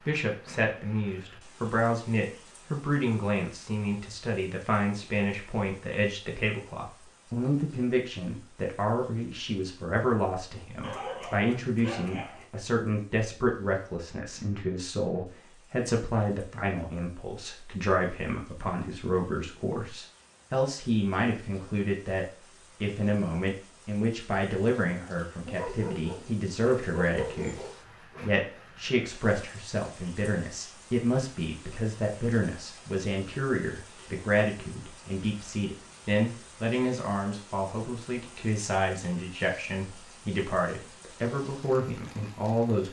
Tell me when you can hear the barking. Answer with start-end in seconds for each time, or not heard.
10.8-12.4, 25.4-28.2.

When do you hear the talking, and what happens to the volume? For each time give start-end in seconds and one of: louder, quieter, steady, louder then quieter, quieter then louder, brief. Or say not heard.
0.1-42.8 steady.